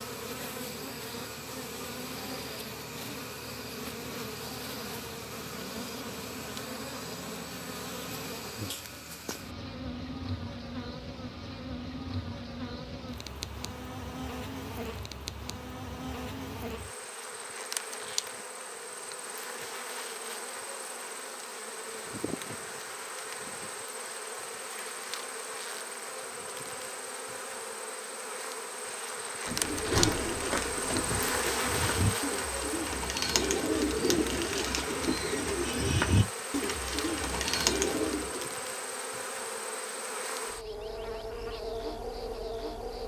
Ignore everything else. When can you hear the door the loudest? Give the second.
30 s.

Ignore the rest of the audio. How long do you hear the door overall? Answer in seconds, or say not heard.
2 s.